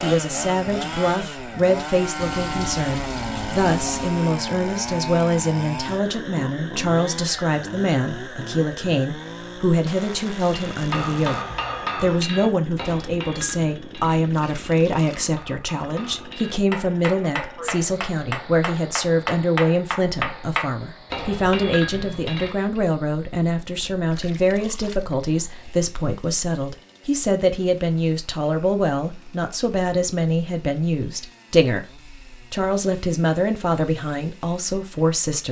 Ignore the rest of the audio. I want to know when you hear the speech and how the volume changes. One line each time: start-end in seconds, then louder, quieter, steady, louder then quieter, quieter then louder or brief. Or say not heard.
0.0-11.4 steady
12.0-35.4 steady.